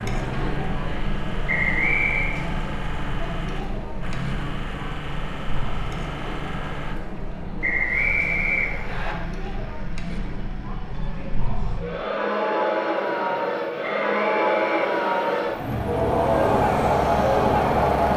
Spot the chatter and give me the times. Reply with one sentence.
You can hear the chatter from 0.0 to 18.1 s.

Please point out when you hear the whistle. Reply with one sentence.
The whistle can be heard from 1.4 to 2.4 s, from 7.6 to 9.2 s and from 14.1 to 14.9 s.